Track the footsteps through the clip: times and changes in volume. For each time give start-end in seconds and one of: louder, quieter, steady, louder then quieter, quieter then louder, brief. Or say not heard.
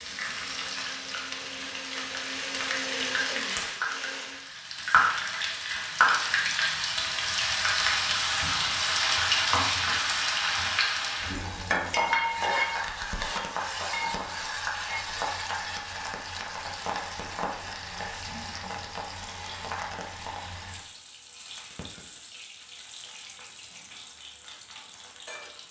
not heard.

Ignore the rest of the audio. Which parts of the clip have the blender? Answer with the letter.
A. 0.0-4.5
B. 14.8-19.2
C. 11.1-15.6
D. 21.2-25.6
A.